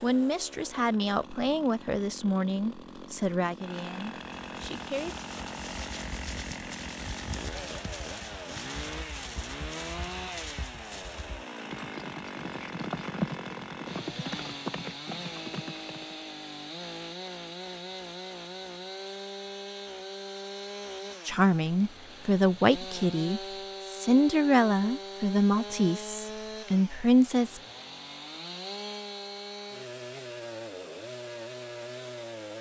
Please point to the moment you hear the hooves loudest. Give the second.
13 s.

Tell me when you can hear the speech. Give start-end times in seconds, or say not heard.
0.0-5.2, 21.2-27.6.